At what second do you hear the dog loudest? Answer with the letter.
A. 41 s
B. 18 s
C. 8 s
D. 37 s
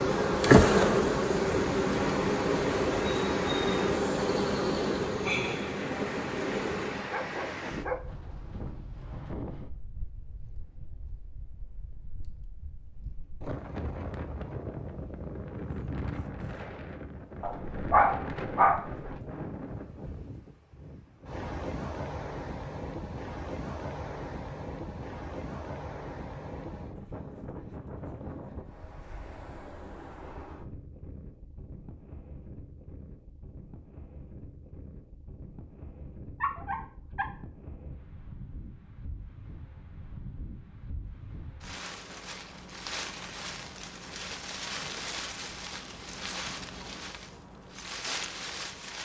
B.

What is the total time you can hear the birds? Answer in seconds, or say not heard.
not heard.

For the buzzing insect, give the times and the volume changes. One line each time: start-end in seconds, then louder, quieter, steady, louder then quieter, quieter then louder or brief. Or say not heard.
0.0-7.1 quieter.